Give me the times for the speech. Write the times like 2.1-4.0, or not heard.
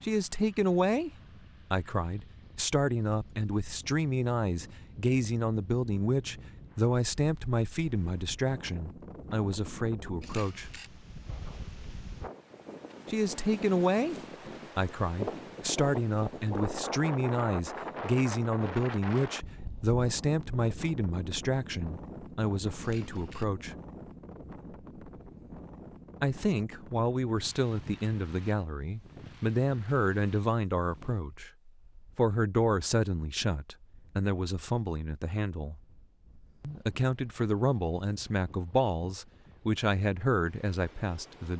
0.0-1.1, 1.7-10.7, 13.1-14.2, 14.8-23.8, 26.2-35.8, 36.6-41.5.